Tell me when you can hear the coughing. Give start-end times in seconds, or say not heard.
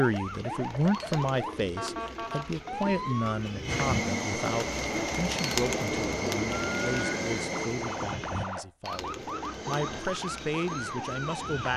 not heard.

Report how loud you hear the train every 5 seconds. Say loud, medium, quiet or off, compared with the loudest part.
loud, loud, medium.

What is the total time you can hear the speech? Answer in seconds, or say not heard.
12 s.